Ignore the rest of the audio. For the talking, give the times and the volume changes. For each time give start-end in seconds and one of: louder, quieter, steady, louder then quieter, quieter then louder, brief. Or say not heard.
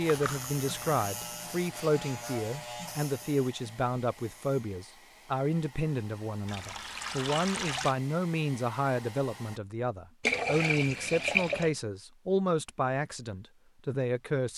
0.0-14.5 steady.